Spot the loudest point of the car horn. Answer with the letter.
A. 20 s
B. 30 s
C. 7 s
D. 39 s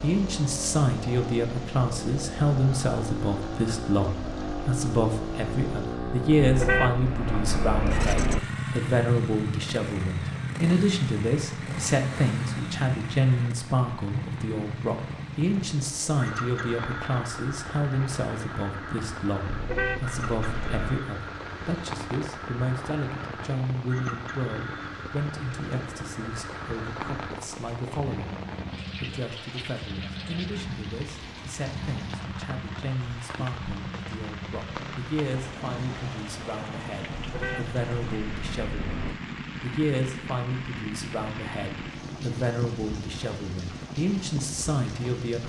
C.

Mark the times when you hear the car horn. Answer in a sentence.
You can hear the car horn from 6.4 to 8.4 s, from 19.4 to 21.0 s and from 37.1 to 39.1 s.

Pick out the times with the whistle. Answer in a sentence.
You can't hear the whistle here.